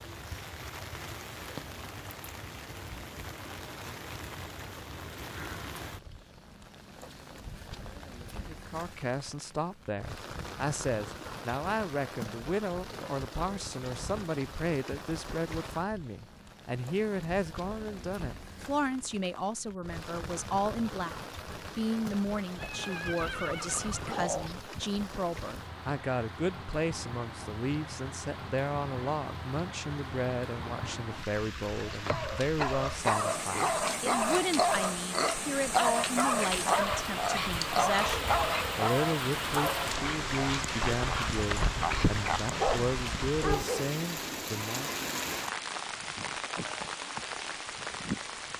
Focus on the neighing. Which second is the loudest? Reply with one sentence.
The loudest moment of the neighing is at 24 seconds.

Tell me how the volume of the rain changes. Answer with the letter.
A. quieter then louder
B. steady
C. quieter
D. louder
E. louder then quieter
D.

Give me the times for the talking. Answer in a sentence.
The talking can be heard from 8.4 to 44.9 s.